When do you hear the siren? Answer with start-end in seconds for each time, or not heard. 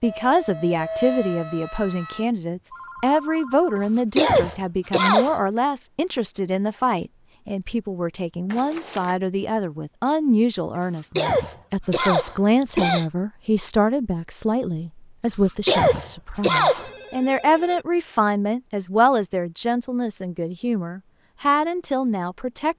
0.0-2.3.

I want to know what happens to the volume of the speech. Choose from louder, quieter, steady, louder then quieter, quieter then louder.
steady.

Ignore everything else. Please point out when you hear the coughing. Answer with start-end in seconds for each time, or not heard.
3.8-5.3, 10.8-13.1, 15.2-16.9.